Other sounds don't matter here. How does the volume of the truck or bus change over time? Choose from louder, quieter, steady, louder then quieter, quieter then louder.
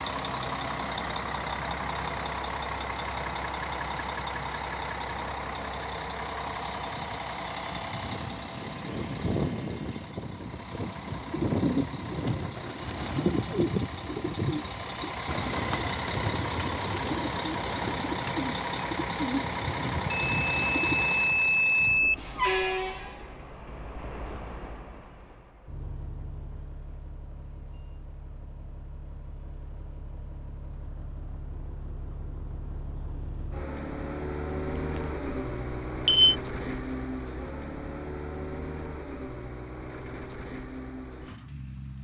quieter then louder.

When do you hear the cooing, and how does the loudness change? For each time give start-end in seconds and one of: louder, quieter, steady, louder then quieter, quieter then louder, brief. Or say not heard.
11.1-21.1 steady.